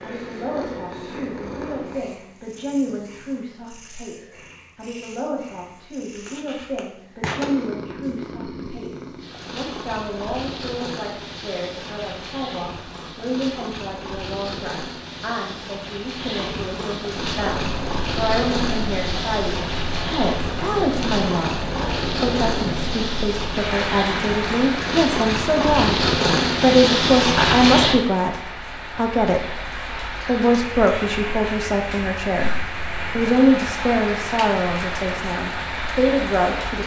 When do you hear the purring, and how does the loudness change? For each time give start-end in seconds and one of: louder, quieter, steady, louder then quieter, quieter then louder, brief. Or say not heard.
0.0-28.0 louder.